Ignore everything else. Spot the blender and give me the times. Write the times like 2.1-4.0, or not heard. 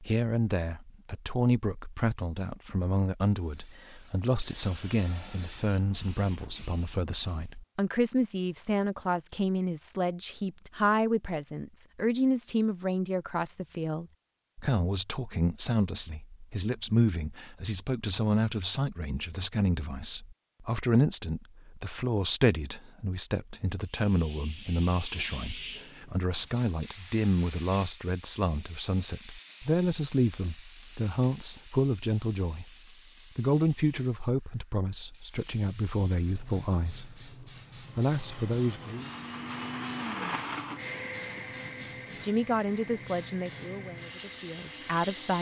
37.8-45.3.